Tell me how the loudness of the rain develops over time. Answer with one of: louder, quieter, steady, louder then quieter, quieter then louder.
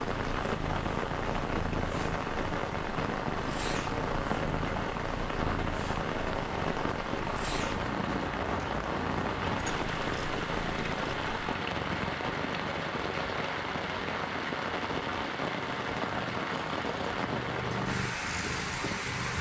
steady.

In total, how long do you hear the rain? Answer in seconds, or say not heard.
19 s.